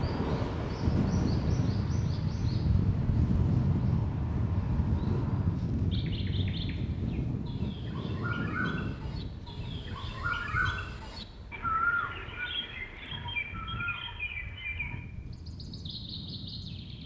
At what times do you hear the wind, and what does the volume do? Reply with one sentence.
The wind can be heard from 0.0 to 17.0 s, getting quieter.